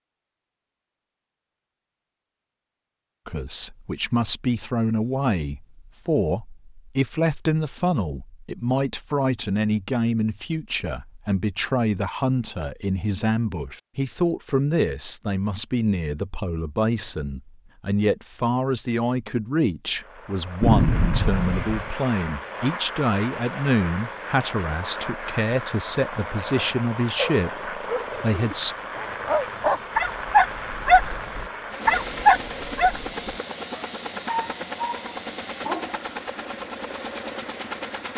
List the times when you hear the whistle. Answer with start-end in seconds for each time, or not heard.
not heard.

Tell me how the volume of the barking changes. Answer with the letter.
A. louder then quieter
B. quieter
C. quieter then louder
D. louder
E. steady
A.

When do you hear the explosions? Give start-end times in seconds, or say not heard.
20.6-21.9.